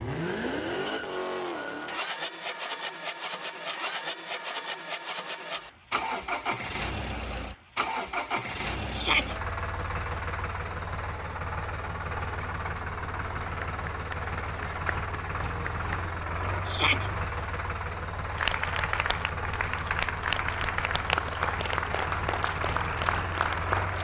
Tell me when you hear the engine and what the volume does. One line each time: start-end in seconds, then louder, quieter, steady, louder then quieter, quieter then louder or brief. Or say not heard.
0.0-23.9 steady.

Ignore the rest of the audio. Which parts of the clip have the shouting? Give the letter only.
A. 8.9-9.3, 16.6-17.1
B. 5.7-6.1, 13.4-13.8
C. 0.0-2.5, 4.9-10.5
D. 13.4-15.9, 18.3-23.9
A.